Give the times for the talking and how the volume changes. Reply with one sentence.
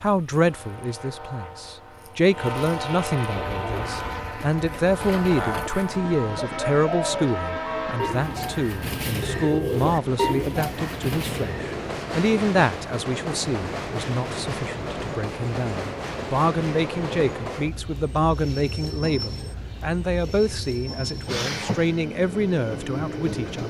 You can hear the talking from 0.0 to 23.6 s, at a steady volume.